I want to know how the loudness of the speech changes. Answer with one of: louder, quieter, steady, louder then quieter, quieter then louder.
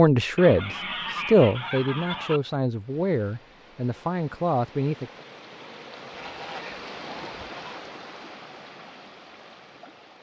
quieter.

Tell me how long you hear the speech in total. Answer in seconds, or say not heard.
5 s.